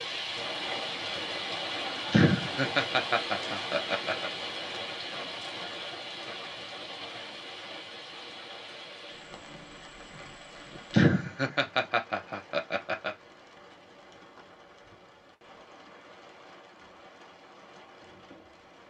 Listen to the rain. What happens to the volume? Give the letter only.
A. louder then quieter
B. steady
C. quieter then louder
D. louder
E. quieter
E.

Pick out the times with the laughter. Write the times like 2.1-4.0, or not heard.
2.1-4.3, 10.9-13.2.